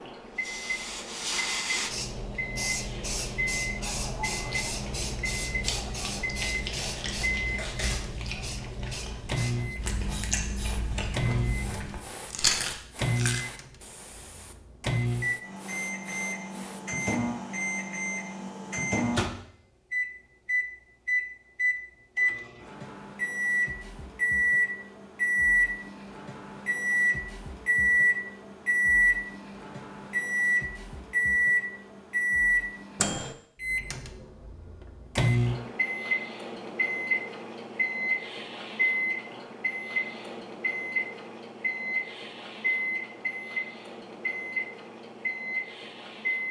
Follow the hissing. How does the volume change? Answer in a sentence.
The volume of the hissing goes down.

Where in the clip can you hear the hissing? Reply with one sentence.
You can hear the hissing from 0.2 to 17.0 s.